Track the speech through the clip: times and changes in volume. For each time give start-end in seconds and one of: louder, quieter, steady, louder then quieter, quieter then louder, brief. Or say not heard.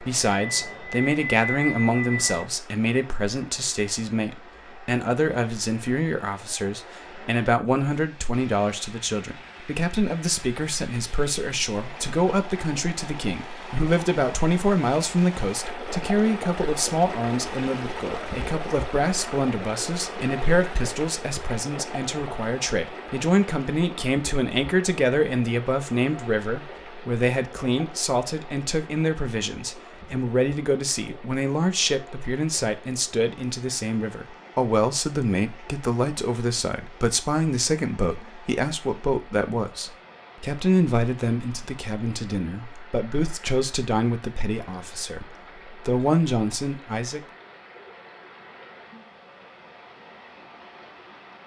0.0-47.2 steady.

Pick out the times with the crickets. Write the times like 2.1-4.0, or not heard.
not heard.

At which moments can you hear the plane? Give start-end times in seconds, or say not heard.
0.0-2.5.